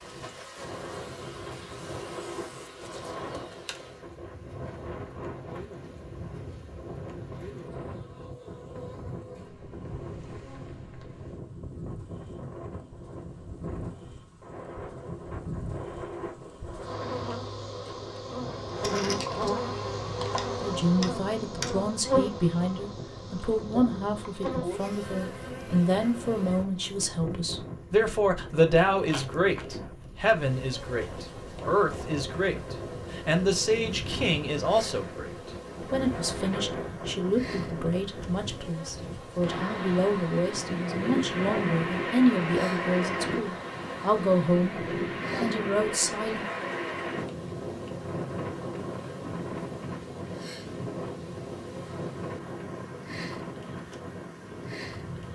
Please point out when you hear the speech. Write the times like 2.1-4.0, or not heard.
20.6-46.5.